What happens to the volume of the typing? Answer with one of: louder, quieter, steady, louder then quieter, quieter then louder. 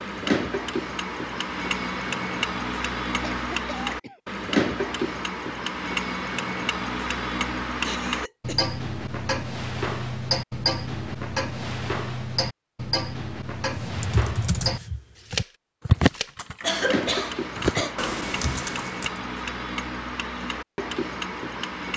louder then quieter.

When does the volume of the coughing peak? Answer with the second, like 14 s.
17 s.